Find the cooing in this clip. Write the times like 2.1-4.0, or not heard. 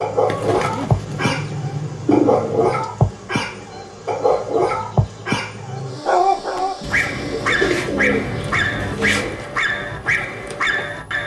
0.2-2.9, 6.8-9.4.